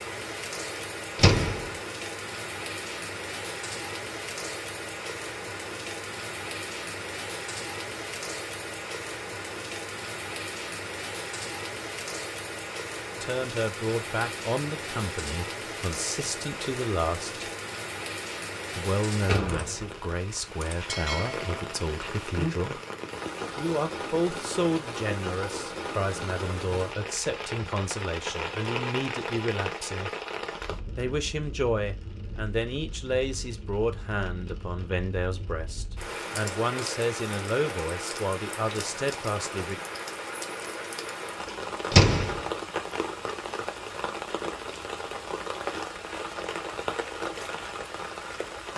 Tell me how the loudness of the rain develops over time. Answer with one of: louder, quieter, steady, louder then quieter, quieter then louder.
steady.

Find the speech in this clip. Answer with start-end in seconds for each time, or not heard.
13.2-17.4, 18.8-22.8, 23.6-30.1, 30.9-39.8.